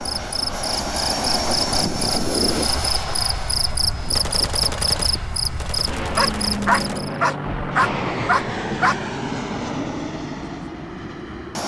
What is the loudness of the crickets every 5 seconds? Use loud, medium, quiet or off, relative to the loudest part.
loud, loud, off.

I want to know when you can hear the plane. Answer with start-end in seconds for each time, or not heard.
0.0-11.6.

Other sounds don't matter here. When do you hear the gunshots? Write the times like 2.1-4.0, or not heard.
4.1-7.7.